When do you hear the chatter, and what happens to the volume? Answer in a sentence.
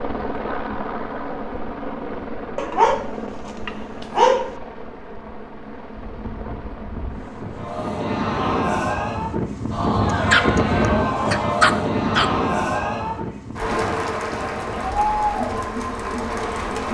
The chatter can be heard from 7.5 to 16.9 s, at a steady volume.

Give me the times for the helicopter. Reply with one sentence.
You can hear the helicopter from 0.0 to 7.8 s.